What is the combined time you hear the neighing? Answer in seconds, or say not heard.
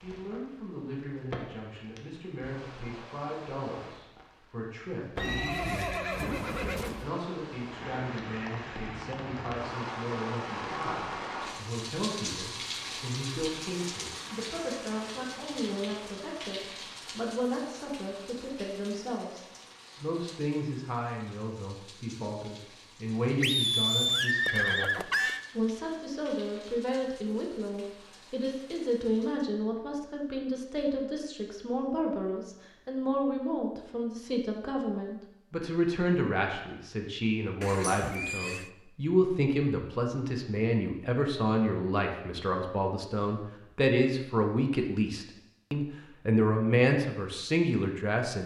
5 s.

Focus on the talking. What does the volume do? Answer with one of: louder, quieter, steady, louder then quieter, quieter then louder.
louder.